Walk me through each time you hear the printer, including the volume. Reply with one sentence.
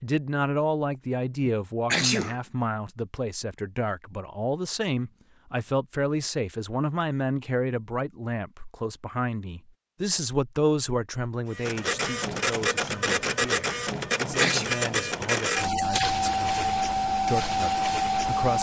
The printer can be heard from 11.5 to 18.5 s, at a steady volume.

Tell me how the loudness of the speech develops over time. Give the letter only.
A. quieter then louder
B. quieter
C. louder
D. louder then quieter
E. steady
B.